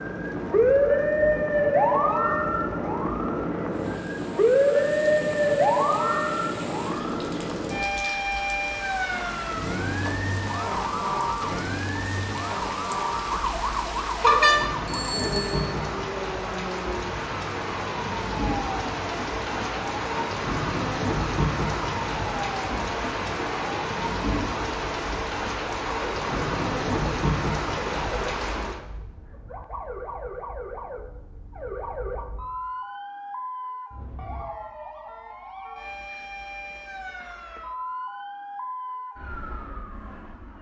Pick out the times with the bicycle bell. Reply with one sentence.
You can hear the bicycle bell from 14.2 to 15.8 s.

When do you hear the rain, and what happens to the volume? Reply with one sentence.
You can hear the rain from 0.0 to 28.8 s, getting louder.